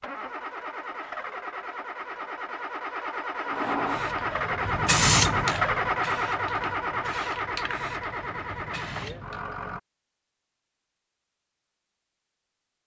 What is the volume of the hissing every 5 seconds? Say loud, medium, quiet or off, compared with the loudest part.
loud, loud, off.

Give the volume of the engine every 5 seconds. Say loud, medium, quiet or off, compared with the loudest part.
loud, loud, off.